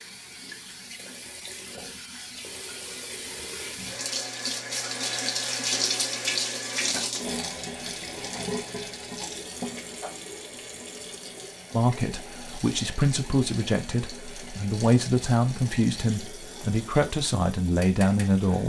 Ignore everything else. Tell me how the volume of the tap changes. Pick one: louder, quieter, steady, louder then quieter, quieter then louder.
louder then quieter.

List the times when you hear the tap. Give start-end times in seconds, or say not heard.
0.0-18.6.